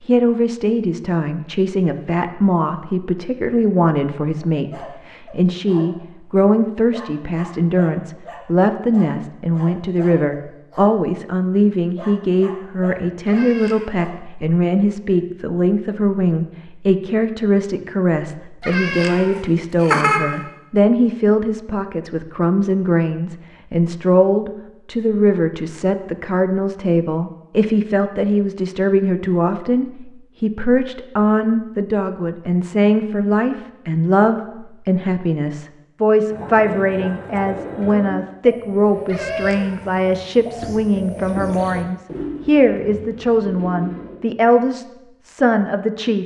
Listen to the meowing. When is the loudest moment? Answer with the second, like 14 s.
20 s.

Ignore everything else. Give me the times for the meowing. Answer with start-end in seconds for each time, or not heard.
13.2-13.9, 18.6-20.2, 39.0-40.0.